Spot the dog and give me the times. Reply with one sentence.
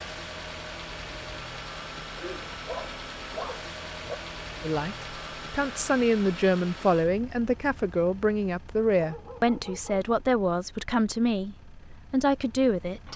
The dog can be heard from 2.1 to 4.2 s and from 8.9 to 9.9 s.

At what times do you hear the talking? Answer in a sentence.
You can hear the talking from 4.6 to 13.1 s.